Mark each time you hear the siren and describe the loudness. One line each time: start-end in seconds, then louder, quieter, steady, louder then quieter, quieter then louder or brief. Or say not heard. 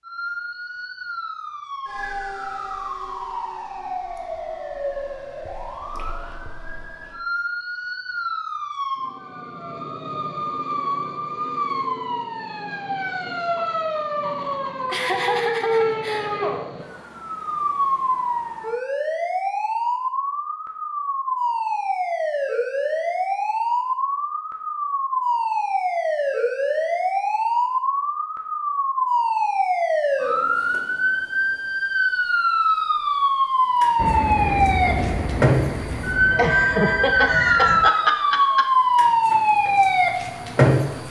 0.0-41.0 louder.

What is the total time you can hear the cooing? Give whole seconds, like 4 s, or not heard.
not heard.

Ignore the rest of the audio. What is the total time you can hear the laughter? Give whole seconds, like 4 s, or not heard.
4 s.